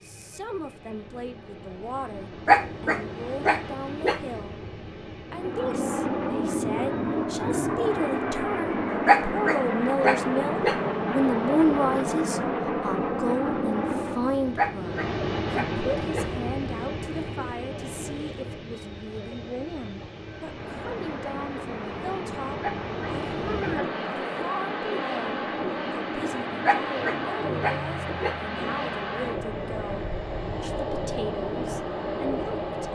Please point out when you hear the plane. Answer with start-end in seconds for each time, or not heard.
5.2-14.5, 20.3-29.9.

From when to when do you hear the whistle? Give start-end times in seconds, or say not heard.
not heard.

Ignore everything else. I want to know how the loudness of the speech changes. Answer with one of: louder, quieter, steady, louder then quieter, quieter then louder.
louder then quieter.